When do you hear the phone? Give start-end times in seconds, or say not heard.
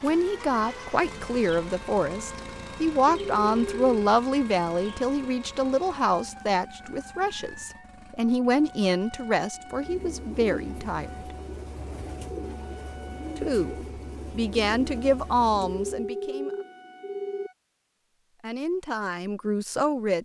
3.0-3.9, 15.8-17.5.